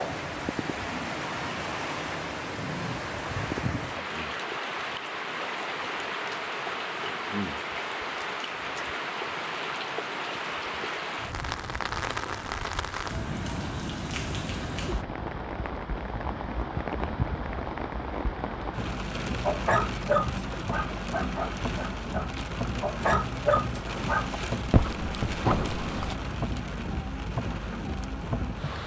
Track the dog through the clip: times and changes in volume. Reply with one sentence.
You can hear the dog from 19.1 to 26.1 s, getting quieter then louder.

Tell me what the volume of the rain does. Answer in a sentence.
The volume of the rain stays about the same.